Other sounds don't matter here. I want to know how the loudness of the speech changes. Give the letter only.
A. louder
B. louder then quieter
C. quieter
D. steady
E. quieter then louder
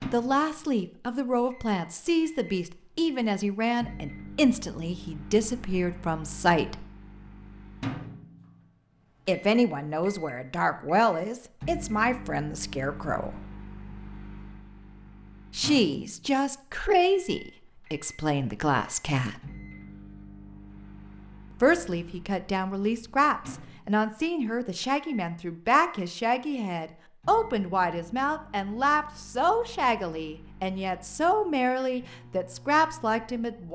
D.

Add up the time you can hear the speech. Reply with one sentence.
You can hear the speech for 27 seconds altogether.